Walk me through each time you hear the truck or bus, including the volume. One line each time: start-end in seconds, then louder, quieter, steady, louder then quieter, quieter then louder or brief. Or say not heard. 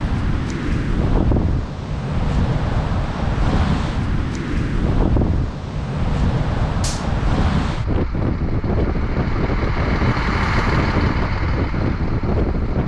7.7-12.8 louder then quieter.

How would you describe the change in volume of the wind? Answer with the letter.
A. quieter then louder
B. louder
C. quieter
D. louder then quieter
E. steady
E.